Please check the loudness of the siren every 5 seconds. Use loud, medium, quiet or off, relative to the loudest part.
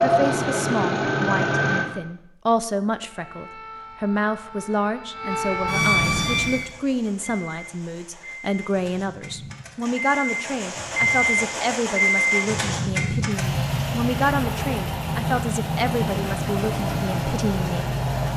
quiet, loud, off, off.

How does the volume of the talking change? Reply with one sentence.
The loudness of the talking stays about the same.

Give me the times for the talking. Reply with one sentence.
You can hear the talking from 0.0 to 18.3 s.